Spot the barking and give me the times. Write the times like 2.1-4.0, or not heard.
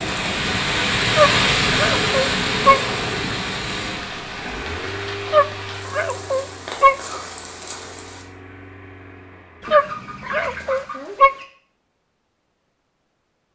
1.1-2.8, 5.3-7.0, 9.7-11.3.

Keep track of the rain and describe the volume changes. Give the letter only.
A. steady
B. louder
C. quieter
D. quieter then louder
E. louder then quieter
C.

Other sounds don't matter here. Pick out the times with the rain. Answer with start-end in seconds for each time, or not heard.
0.0-8.2.